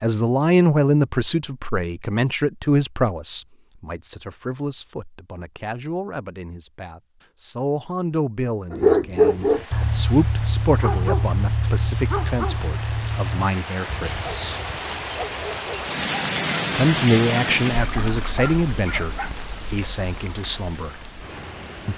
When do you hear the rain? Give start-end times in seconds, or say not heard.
9.2-21.9.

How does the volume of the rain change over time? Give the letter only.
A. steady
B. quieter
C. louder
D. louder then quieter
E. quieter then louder
D.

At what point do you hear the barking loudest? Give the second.
9 s.